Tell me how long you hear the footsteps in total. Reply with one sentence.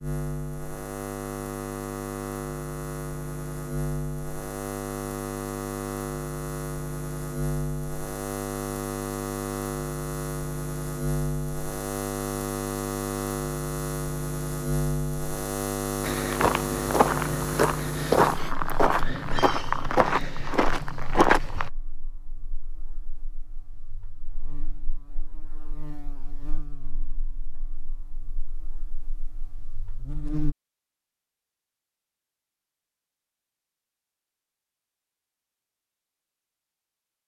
The footsteps can be heard for 6 seconds in total.